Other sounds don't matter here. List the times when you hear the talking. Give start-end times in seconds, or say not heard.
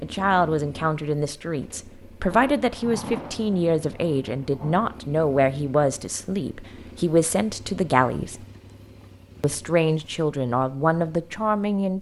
0.0-8.4, 9.4-11.9.